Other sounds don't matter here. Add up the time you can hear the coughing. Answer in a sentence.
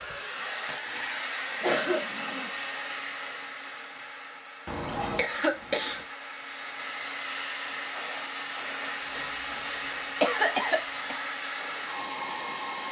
The coughing can be heard for 4 seconds in total.